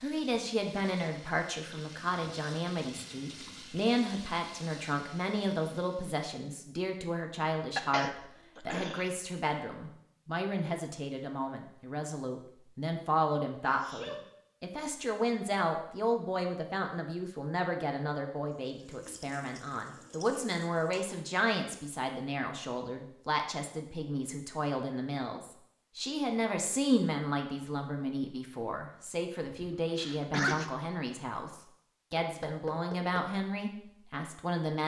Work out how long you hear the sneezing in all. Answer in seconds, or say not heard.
3 s.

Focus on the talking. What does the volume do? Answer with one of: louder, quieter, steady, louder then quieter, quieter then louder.
steady.